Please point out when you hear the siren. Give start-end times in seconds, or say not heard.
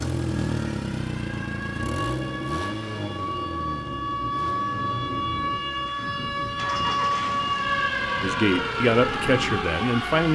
0.0-10.3.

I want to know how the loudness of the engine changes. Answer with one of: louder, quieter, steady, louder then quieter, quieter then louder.
quieter.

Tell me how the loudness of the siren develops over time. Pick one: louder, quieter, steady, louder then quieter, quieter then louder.
louder.